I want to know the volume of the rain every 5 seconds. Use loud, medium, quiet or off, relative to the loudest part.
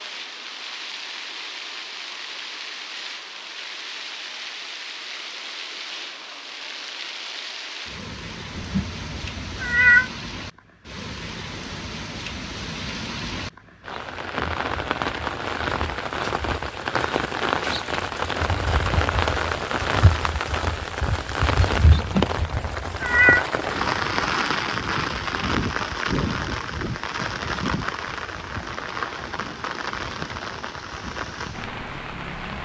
medium, medium, medium, loud, loud, loud, medium.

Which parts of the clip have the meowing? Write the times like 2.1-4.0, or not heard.
8.6-10.1, 21.9-23.4.